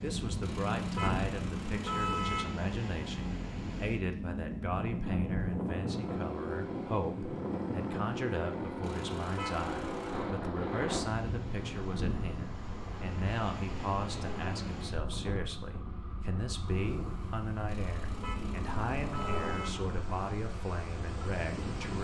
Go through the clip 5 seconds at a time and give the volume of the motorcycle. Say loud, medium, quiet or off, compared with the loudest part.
loud, loud, loud, loud, medium.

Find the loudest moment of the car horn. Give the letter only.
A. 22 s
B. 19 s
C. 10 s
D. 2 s
D.